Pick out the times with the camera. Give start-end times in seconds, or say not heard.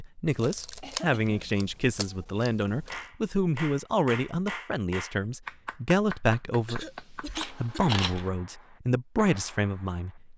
0.3-3.0, 7.3-8.3.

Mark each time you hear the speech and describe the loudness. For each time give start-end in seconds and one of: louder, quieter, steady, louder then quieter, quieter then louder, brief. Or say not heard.
0.0-10.3 steady.